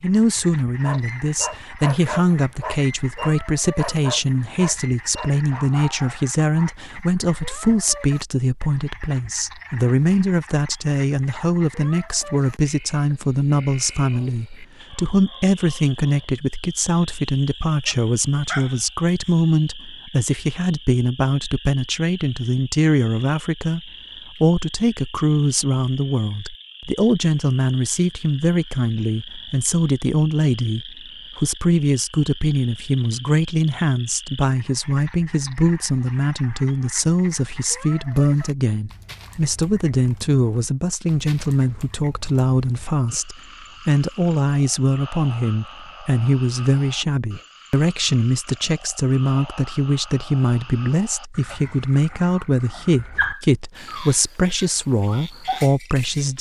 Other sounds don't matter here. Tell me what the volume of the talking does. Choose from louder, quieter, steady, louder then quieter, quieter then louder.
steady.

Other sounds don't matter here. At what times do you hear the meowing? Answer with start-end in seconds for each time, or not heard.
not heard.